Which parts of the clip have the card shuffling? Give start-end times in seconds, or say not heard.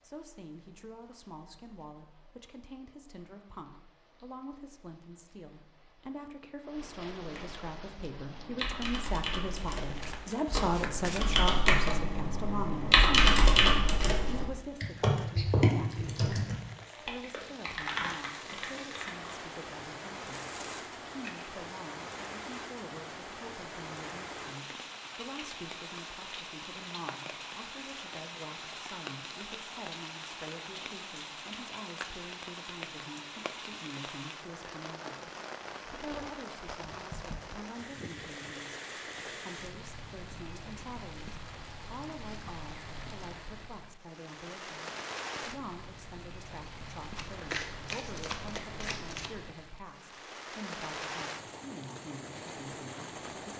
10.0-11.4, 20.3-21.5, 47.1-49.4.